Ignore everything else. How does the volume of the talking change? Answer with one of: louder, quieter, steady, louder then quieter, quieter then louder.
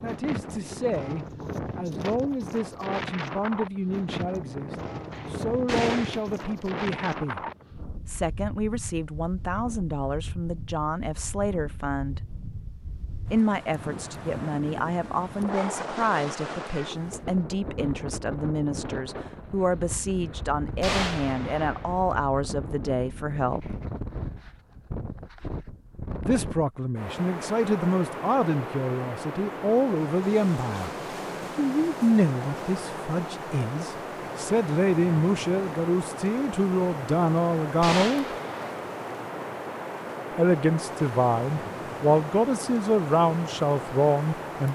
louder.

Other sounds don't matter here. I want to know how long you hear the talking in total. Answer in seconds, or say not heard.
38 s.